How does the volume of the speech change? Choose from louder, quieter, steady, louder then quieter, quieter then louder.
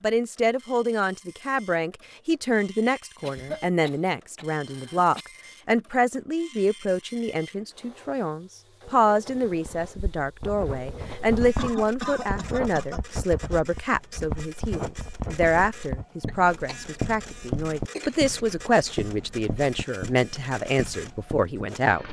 steady.